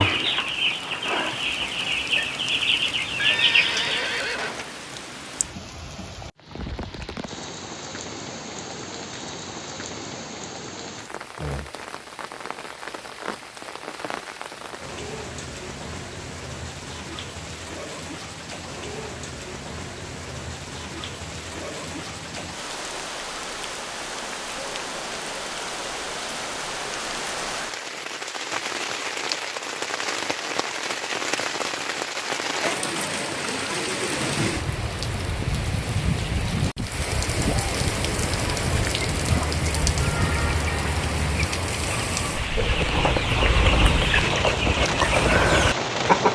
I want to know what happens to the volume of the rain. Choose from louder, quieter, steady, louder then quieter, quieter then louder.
louder.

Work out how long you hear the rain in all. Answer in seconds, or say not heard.
46 s.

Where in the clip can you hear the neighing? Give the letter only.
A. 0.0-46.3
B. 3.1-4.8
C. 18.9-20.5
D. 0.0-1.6
B.